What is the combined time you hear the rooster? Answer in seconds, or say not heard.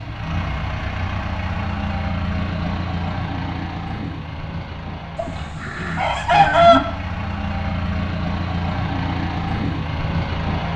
2 s.